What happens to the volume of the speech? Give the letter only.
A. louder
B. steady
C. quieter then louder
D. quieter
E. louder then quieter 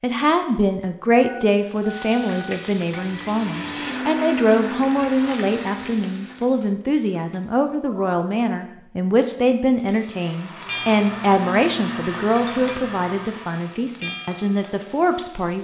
B.